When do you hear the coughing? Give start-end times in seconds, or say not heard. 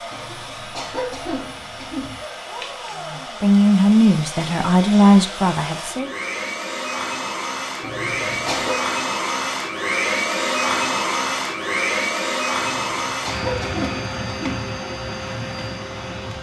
0.1-2.2, 7.8-8.8, 12.6-14.7.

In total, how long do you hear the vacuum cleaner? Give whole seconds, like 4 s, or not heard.
16 s.